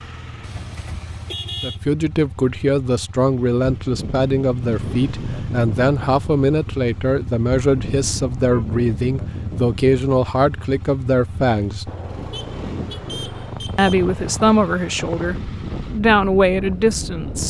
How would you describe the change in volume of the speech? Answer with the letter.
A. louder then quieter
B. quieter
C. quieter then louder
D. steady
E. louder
D.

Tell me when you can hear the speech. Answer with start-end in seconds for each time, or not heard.
1.6-11.9, 13.8-17.4.